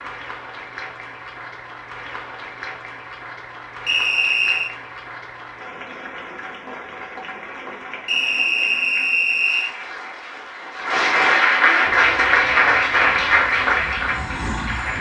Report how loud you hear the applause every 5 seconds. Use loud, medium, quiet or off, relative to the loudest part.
quiet, quiet, loud.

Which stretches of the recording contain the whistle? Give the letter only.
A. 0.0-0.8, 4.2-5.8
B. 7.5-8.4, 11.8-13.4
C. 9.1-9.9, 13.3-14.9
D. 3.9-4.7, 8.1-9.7
D.